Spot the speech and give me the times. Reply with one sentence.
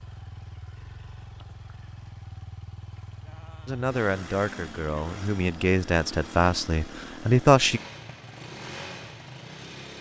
The speech can be heard from 3.6 to 7.8 s.